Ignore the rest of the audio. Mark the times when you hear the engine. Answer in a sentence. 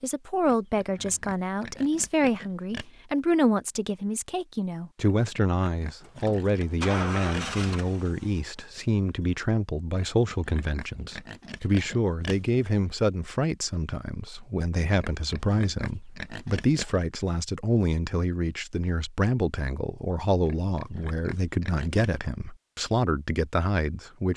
The engine can be heard from 6.0 to 9.4 s.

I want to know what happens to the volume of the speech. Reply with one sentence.
The loudness of the speech stays about the same.